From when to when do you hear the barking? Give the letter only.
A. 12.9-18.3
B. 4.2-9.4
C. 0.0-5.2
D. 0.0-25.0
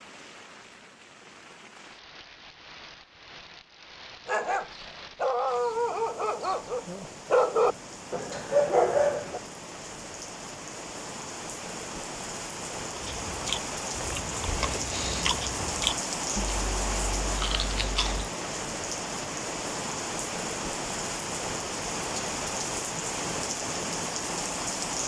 B.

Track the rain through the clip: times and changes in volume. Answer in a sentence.
You can hear the rain from 0.0 to 25.0 s, getting louder.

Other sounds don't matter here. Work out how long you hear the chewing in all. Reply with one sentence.
The chewing can be heard for 5 seconds in total.